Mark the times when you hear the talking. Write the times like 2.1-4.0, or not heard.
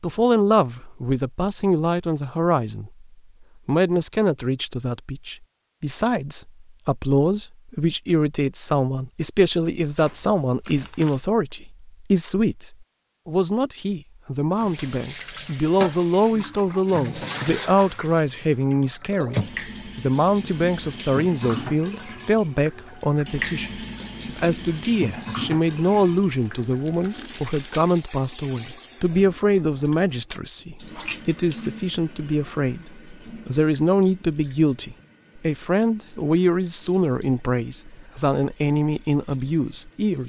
0.0-3.0, 3.6-40.2.